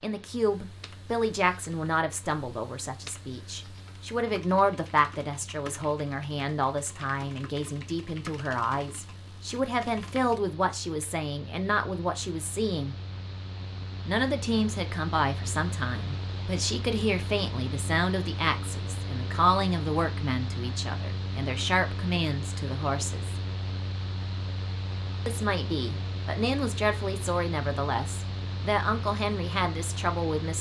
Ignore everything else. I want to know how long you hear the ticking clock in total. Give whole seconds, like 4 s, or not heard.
not heard.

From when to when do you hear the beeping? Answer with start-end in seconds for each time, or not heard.
not heard.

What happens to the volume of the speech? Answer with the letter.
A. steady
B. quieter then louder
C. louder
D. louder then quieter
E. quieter
A.